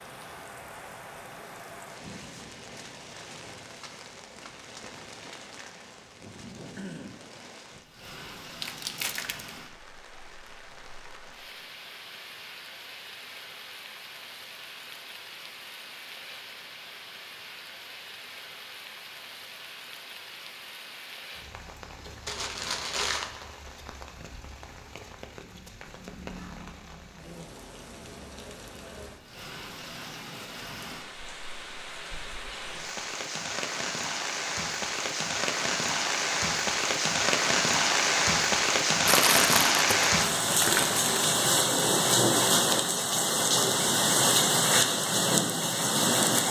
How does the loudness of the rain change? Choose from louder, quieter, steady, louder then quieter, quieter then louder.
louder.